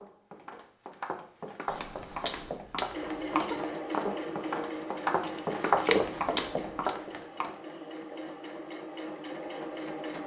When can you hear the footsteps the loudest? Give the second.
6 s.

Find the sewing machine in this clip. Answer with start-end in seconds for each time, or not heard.
2.9-10.2.